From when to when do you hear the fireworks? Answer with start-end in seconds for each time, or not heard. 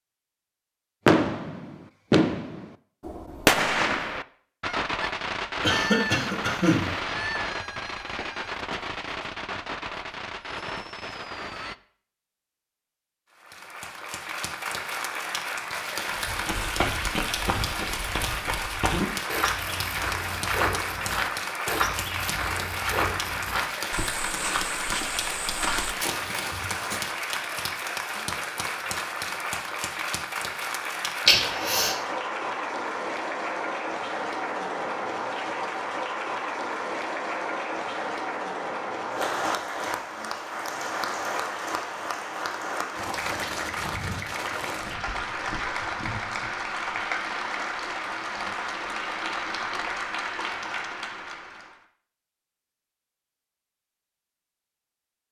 1.1-11.8.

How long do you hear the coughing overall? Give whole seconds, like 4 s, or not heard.
2 s.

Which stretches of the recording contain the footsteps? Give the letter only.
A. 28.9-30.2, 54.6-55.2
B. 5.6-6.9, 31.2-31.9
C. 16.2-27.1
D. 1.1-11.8
C.